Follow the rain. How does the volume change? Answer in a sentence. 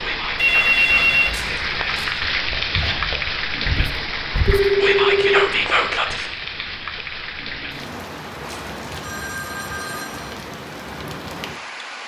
The volume of the rain goes down.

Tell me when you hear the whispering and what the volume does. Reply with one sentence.
You can hear the whispering from 0.0 to 6.3 s, getting louder.